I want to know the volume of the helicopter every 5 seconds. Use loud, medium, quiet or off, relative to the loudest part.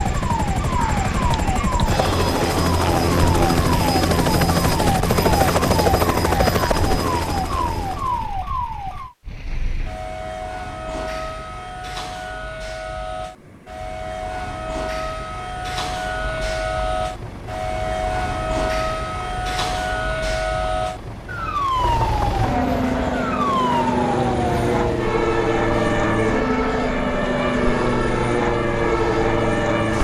loud, loud, off, quiet, loud, loud.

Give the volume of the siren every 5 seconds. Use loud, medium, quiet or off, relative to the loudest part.
loud, loud, medium, loud, loud, loud.